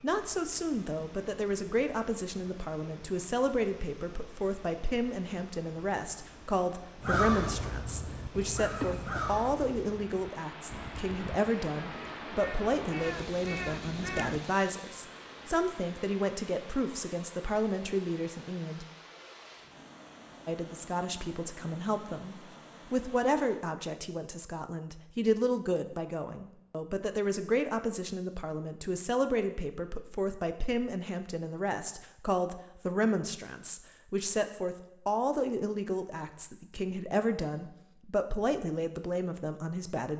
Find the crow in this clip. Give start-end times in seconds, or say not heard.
7.0-14.8.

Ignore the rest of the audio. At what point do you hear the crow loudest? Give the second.
7 s.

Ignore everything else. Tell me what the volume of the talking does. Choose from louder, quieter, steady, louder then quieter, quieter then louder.
steady.